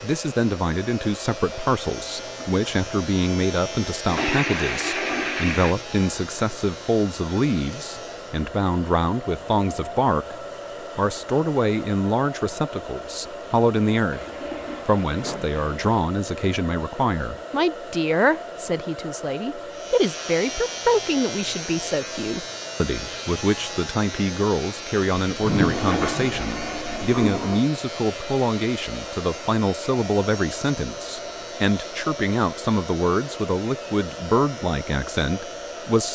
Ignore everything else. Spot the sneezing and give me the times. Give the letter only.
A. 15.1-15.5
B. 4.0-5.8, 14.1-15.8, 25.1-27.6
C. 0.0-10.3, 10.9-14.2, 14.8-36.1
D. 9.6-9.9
A.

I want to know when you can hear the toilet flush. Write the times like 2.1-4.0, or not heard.
4.0-5.8, 14.1-15.8, 25.1-27.6.